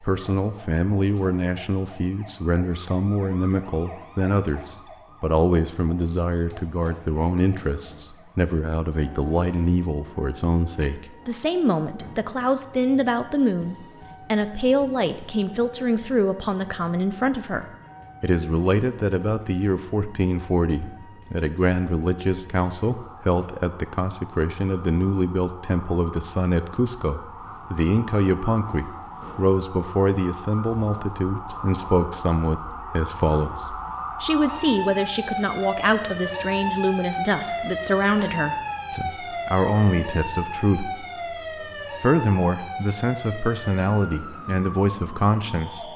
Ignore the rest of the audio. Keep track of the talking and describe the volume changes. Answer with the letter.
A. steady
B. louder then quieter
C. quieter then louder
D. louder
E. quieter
A.